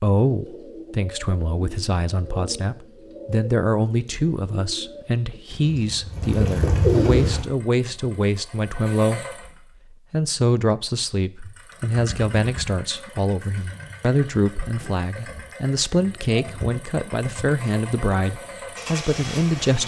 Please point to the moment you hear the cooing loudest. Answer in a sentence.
The loudest moment of the cooing is at 7 seconds.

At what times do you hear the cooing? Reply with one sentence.
You can hear the cooing from 0.2 to 7.5 s.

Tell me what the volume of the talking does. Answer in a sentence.
The volume of the talking stays about the same.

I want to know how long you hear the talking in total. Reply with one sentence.
The talking can be heard for 20 seconds in total.